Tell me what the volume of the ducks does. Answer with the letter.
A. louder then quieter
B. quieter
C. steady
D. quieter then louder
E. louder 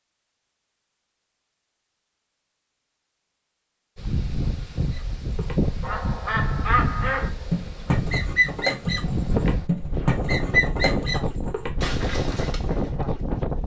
A.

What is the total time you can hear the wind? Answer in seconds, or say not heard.
10 s.